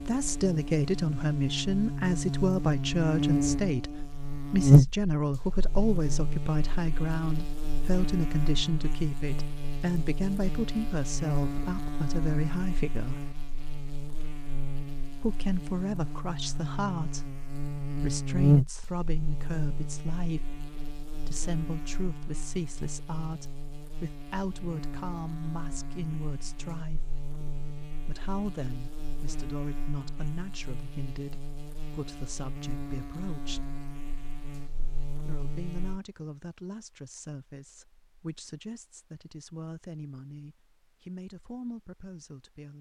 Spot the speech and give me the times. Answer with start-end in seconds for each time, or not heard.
0.0-13.2, 15.2-27.2, 28.0-33.6, 35.2-42.7.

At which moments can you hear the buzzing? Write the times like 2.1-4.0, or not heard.
0.0-36.0.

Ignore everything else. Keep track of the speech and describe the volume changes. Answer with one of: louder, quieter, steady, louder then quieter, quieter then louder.
quieter.